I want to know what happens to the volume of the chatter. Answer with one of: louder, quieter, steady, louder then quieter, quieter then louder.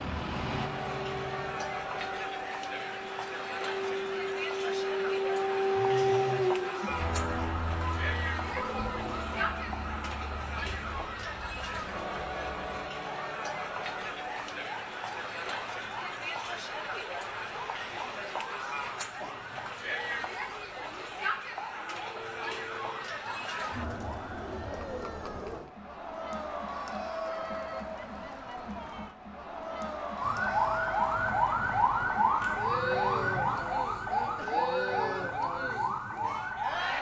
steady.